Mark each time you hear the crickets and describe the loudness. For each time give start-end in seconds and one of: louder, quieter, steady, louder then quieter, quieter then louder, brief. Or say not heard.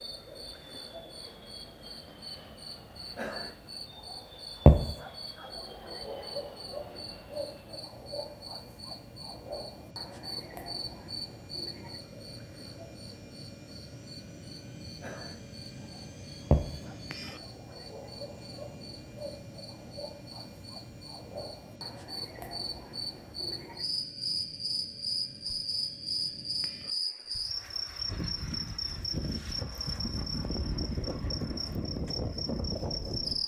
0.0-33.4 quieter then louder.